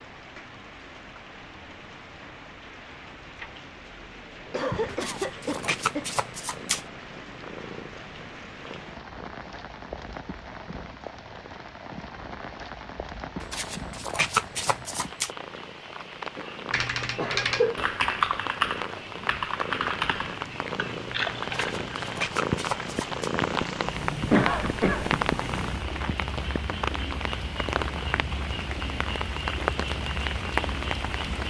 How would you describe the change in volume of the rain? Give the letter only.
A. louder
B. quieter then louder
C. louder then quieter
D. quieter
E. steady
A.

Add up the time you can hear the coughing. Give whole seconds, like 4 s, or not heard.
4 s.